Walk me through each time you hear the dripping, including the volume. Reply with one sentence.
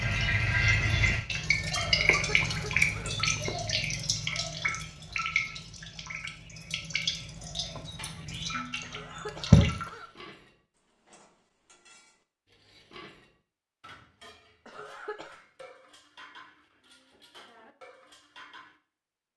You can hear the dripping from 0.0 to 9.9 s, getting quieter.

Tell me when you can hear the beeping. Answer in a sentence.
You can't hear the beeping here.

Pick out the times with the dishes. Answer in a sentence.
You can hear the dishes from 8.0 to 18.8 s.